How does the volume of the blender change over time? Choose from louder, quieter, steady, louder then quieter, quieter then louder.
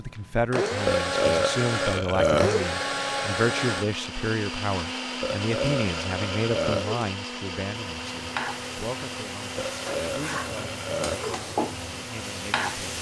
quieter.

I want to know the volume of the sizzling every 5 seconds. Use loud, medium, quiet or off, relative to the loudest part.
off, loud, loud.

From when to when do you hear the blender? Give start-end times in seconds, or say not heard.
0.0-12.9.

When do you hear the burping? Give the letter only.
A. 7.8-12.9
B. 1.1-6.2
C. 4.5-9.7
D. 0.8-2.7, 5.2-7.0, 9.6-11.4
D.